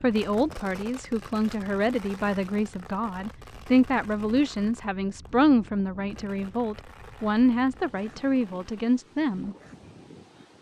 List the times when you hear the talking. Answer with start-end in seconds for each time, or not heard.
0.0-9.6.